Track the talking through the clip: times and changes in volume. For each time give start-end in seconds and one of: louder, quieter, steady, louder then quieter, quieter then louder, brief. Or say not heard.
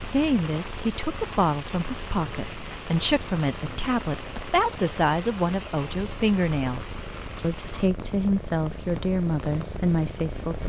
0.0-10.6 steady.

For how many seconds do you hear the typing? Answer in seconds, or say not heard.
not heard.